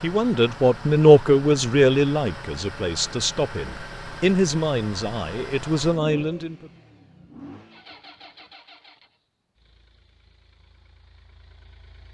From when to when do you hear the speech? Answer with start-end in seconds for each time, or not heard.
0.0-6.7.